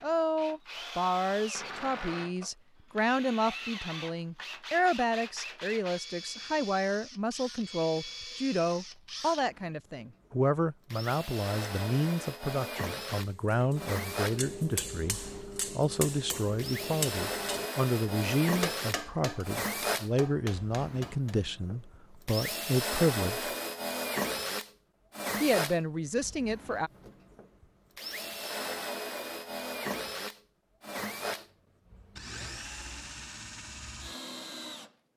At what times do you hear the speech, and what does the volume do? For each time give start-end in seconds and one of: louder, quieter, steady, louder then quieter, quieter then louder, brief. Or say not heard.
0.0-23.6 steady
25.4-26.9 brief.